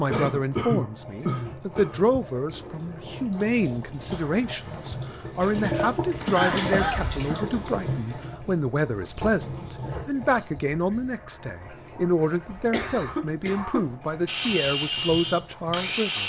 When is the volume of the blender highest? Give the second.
15 s.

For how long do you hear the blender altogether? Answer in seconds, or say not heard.
4 s.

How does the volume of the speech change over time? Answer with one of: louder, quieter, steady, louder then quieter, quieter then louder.
steady.